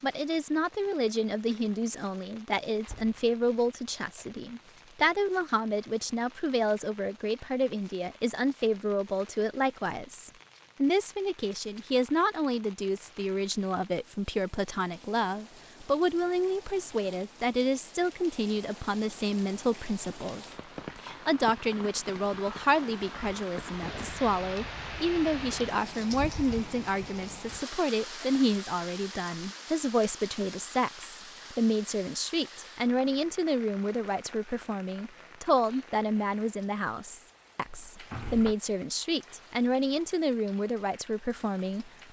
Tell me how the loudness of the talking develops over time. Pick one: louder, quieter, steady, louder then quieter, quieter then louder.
steady.